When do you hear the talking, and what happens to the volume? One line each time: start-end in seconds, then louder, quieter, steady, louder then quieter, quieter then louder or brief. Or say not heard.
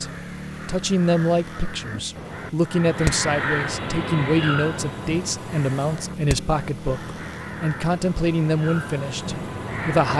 0.0-10.1 steady.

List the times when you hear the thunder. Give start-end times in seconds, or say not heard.
not heard.